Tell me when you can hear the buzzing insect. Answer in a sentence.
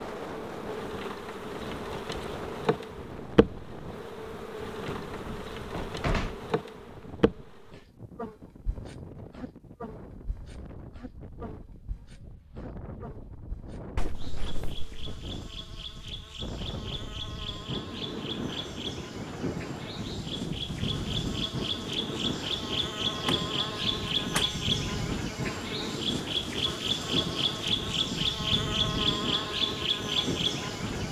You can hear the buzzing insect from 0.0 to 31.0 s.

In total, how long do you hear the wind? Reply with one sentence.
You can hear the wind for 31 seconds altogether.